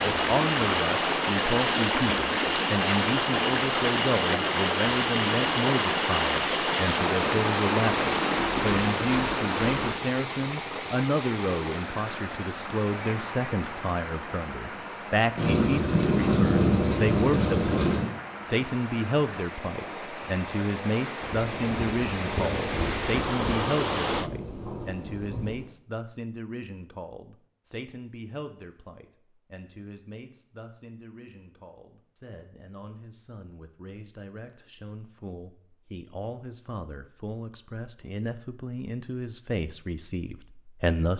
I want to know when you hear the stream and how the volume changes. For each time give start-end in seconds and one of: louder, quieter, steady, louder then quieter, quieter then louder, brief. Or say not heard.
0.0-24.3 quieter then louder.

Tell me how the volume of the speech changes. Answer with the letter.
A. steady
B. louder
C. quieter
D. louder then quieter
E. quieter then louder
E.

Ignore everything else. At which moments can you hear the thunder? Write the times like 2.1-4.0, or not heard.
15.3-18.1, 21.2-25.6.